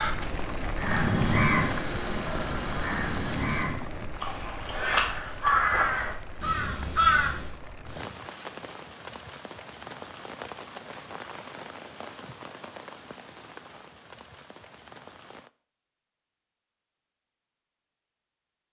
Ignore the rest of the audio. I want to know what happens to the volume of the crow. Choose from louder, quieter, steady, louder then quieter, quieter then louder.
quieter then louder.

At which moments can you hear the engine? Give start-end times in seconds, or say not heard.
0.0-3.7.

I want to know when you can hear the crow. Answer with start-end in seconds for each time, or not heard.
0.8-7.5.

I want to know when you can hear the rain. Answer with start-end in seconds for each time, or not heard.
0.0-15.5.